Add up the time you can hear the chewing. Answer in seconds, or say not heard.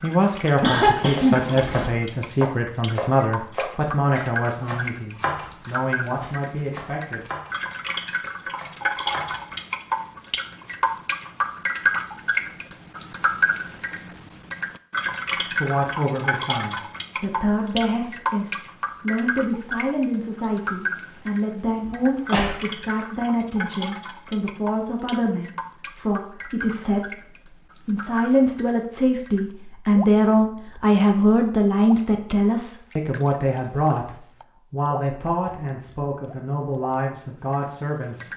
not heard.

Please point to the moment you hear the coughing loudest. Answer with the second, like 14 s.
1 s.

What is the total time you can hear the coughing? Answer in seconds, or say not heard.
2 s.